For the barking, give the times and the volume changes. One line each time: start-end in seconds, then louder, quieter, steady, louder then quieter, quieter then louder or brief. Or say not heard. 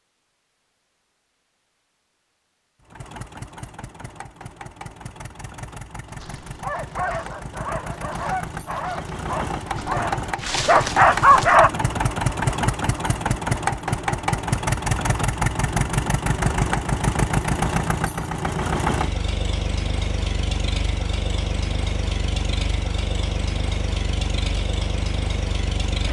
6.0-11.7 louder.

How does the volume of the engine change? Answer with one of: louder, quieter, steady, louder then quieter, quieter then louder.
louder then quieter.